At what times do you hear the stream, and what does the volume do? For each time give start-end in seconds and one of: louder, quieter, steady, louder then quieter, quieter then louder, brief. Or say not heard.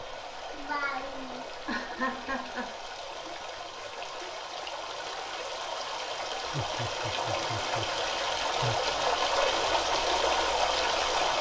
0.0-11.3 louder.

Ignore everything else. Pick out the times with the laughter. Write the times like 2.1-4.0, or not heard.
0.5-2.7, 6.4-8.9.